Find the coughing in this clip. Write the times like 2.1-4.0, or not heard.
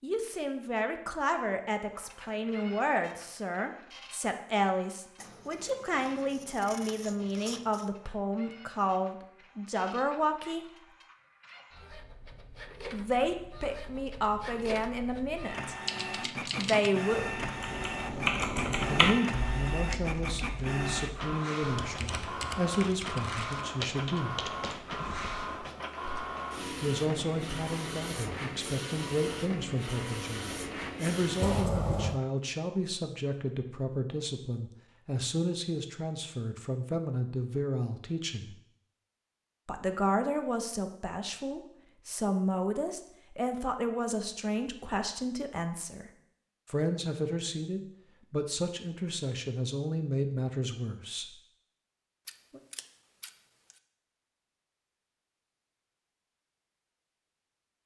not heard.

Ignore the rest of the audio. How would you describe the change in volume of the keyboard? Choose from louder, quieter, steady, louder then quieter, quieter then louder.
louder then quieter.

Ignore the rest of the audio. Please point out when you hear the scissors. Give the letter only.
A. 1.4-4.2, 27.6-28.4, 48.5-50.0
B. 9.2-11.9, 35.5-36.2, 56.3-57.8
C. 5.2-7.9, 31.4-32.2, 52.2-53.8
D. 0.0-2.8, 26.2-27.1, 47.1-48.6
C.